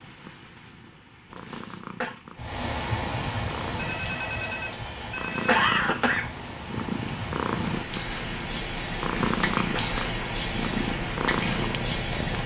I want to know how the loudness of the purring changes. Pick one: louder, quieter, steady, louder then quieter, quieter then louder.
louder.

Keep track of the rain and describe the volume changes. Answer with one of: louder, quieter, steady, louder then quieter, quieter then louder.
quieter then louder.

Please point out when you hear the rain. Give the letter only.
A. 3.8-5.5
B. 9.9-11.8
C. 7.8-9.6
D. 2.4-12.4
D.